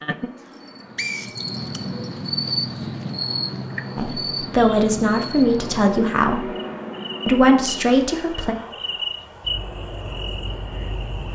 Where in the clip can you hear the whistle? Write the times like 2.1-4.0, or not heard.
0.5-2.1.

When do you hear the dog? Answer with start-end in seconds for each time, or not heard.
not heard.